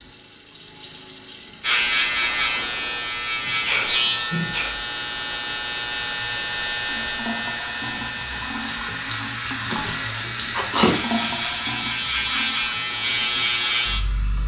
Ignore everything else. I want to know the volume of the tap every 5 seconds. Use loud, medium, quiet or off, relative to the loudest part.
medium, loud, loud.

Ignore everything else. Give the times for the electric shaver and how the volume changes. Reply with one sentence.
The electric shaver can be heard from 1.6 to 14.4 s, getting quieter then louder.